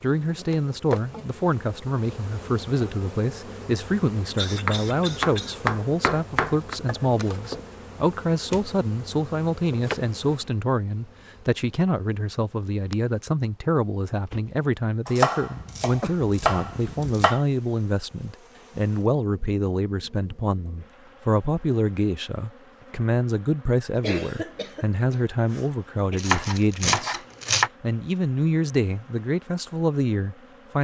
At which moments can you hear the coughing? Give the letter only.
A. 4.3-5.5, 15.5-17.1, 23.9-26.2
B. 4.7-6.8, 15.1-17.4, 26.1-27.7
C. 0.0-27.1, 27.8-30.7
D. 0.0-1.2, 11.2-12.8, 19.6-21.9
A.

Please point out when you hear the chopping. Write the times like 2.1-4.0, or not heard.
4.7-6.8, 15.1-17.4, 26.1-27.7.